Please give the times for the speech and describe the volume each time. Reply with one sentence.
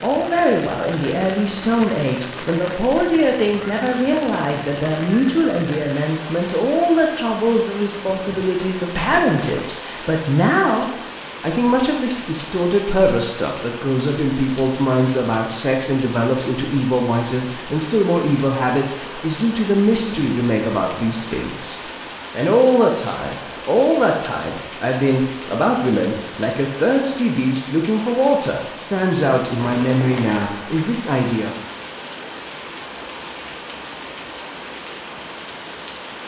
The speech can be heard from 0.0 to 31.6 s, at a steady volume.